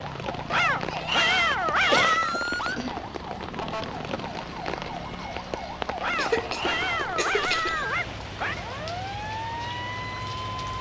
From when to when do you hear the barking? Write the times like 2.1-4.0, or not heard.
0.5-2.4, 6.0-8.7.